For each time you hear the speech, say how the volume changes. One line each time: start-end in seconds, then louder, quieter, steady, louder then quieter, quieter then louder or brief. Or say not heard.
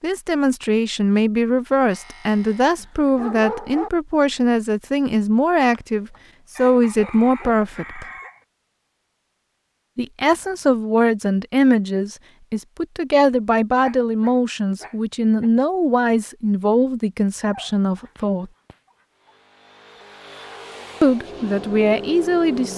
0.0-8.1 steady
9.9-18.5 steady
21.0-22.7 brief.